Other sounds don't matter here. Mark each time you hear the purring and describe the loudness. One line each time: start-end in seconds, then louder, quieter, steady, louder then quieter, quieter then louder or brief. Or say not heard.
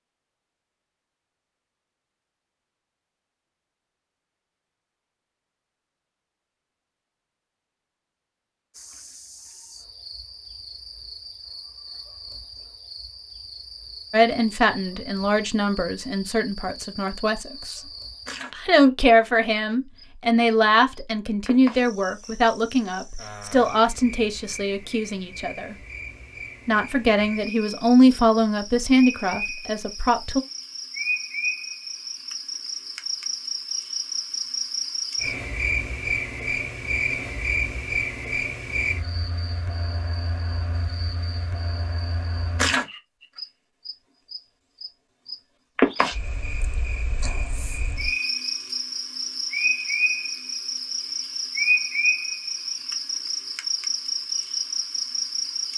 not heard.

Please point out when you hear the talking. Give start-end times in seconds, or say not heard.
14.1-17.8, 18.5-25.8, 26.6-30.4.